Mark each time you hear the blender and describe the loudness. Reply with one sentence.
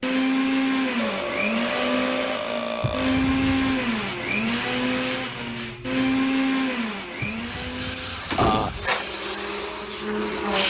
You can hear the blender from 0.0 to 10.6 s, getting quieter.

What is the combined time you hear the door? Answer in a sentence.
The door can be heard for 3 seconds in total.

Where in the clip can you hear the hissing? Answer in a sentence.
The hissing can be heard from 3.5 to 10.6 s.